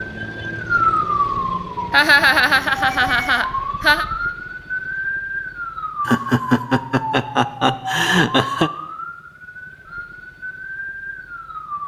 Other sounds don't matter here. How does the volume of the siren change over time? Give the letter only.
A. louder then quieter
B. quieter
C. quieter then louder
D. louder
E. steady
B.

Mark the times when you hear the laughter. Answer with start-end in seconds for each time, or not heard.
1.9-4.0, 6.0-8.7.